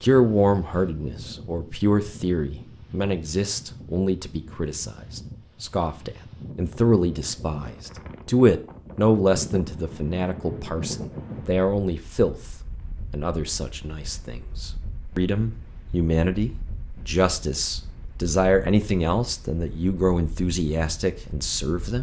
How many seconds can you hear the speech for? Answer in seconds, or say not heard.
21 s.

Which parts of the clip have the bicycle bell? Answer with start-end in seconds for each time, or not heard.
not heard.